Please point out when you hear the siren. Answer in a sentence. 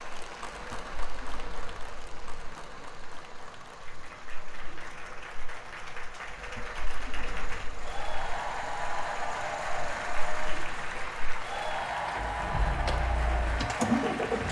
The siren can't be heard in this clip.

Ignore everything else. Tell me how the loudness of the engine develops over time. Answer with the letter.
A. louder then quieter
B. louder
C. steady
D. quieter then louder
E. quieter
B.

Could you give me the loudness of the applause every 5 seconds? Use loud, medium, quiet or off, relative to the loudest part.
medium, loud, loud.